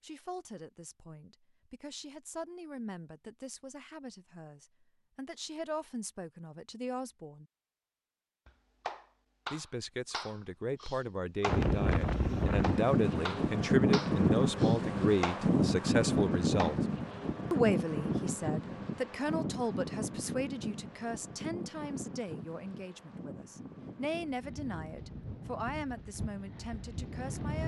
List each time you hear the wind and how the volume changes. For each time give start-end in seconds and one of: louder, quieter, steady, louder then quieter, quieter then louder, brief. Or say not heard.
11.4-27.6 quieter.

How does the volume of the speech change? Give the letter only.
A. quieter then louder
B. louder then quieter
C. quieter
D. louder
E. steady
B.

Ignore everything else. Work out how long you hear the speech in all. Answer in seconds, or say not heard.
25 s.